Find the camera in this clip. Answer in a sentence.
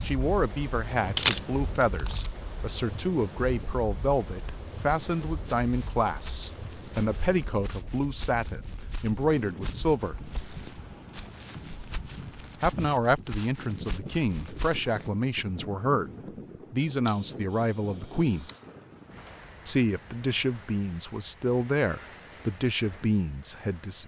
The camera can be heard from 1.1 to 2.3 s and from 17.1 to 19.4 s.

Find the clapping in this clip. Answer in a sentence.
You can't hear the clapping here.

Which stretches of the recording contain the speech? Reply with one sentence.
You can hear the speech from 0.0 to 10.2 s, from 12.6 to 18.5 s and from 19.6 to 24.0 s.